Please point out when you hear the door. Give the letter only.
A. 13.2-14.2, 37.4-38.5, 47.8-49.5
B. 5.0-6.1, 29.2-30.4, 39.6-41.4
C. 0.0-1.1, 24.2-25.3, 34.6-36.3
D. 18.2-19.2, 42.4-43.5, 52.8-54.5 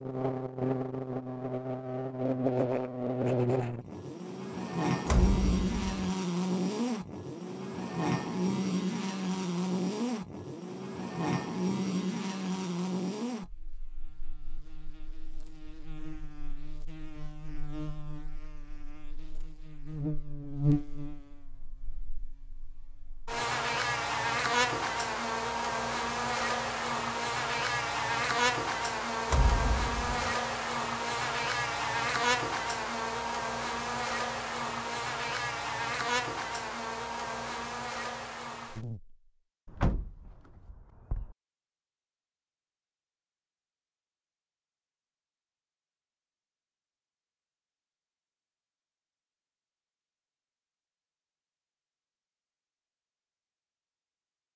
B.